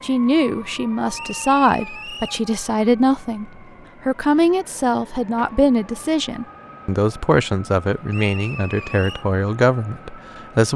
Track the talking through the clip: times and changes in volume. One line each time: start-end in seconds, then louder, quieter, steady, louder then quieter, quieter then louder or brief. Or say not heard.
0.0-10.7 steady.